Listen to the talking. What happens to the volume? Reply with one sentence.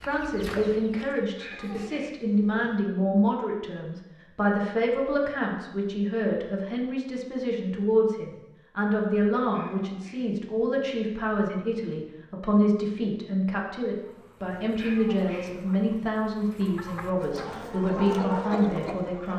The volume of the talking stays about the same.